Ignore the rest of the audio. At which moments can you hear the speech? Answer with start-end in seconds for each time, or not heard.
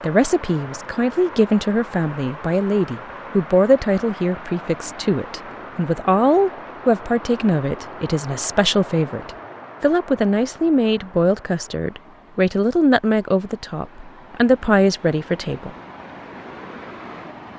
0.0-15.7.